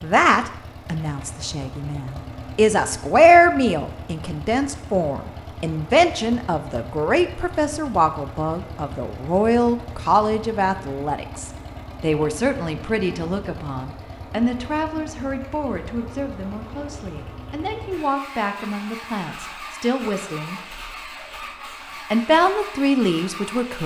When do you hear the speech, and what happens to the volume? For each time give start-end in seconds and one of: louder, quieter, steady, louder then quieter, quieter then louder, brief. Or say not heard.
0.0-20.6 quieter
22.1-23.8 brief.